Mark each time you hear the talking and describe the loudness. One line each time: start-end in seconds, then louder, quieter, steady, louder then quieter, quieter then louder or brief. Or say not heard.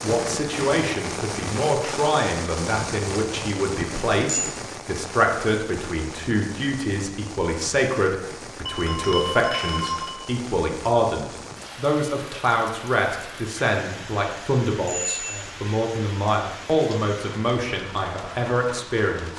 0.0-19.3 steady.